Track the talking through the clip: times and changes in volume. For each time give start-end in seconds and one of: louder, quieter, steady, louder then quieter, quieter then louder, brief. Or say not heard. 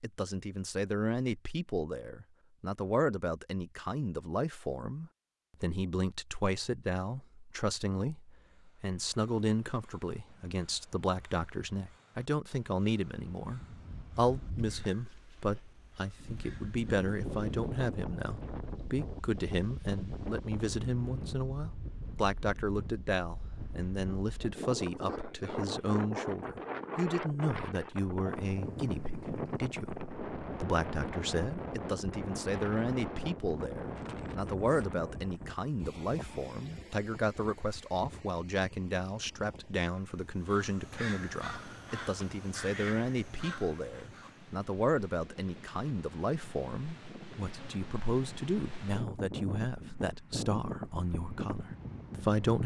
0.0-52.6 steady.